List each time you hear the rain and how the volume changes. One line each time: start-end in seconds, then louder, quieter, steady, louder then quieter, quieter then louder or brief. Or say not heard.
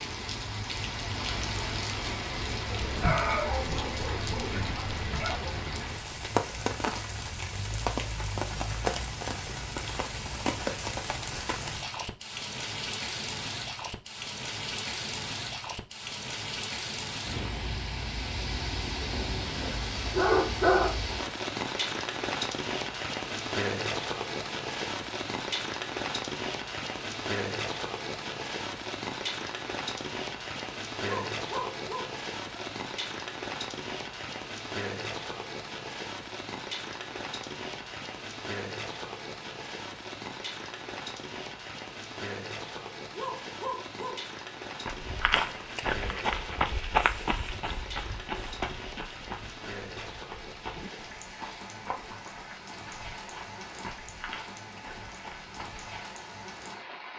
0.0-57.1 quieter.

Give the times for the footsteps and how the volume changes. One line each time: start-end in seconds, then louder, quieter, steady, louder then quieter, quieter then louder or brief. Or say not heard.
44.9-55.9 quieter.